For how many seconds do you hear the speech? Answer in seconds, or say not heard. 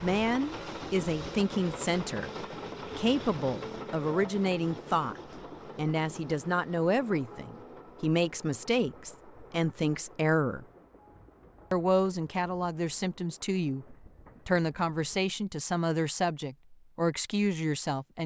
17 s.